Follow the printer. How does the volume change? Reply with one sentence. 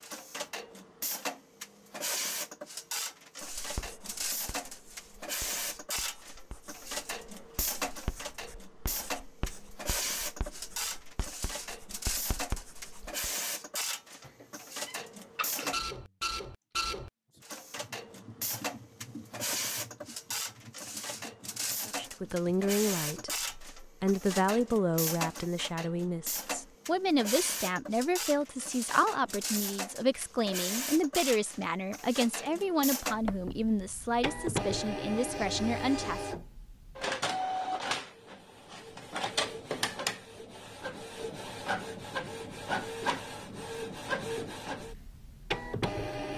The volume of the printer stays about the same.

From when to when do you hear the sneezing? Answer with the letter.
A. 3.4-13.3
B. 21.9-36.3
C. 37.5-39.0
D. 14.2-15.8
D.